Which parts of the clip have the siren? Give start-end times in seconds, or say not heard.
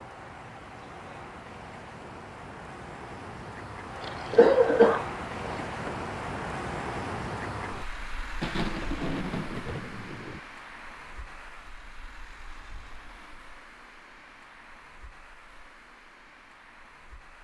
not heard.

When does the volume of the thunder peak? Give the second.
9 s.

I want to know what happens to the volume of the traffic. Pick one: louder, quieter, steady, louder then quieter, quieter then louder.
louder then quieter.